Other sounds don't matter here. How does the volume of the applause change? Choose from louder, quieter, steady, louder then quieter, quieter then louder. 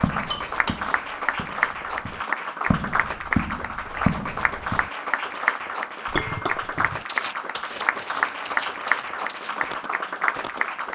steady.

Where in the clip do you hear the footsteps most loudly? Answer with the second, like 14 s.
4 s.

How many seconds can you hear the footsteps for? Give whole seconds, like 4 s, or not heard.
9 s.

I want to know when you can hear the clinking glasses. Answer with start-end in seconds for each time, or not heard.
0.1-0.8, 6.1-7.0.